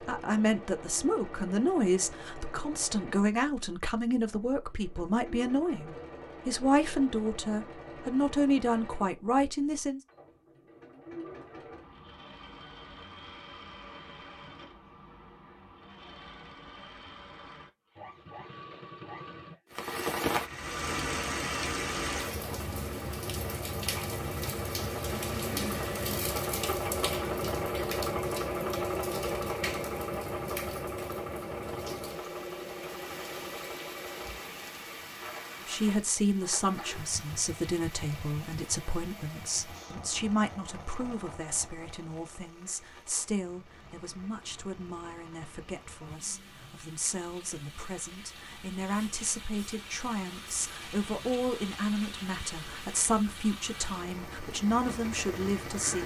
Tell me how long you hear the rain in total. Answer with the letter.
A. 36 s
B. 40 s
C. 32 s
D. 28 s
A.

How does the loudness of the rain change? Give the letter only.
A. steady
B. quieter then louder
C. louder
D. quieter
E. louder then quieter
B.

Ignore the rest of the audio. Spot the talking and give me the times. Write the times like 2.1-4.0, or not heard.
0.1-10.0, 35.6-56.0.